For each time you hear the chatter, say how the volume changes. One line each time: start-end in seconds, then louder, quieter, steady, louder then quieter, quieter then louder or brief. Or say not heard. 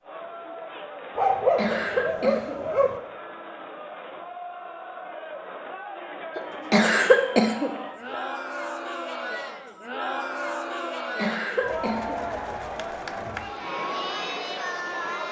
0.0-15.2 louder.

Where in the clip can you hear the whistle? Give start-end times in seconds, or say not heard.
not heard.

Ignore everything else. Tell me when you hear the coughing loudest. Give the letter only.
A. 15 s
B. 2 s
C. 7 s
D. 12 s
C.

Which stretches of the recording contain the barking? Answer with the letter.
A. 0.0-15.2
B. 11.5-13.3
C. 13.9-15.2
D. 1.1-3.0
D.